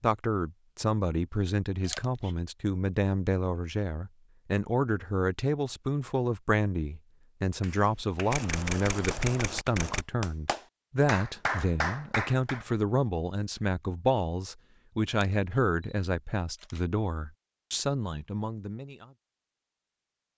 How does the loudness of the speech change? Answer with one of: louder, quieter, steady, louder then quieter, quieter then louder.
steady.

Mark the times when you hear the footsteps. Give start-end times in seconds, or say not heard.
not heard.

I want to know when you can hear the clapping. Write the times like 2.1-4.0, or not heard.
7.6-12.7.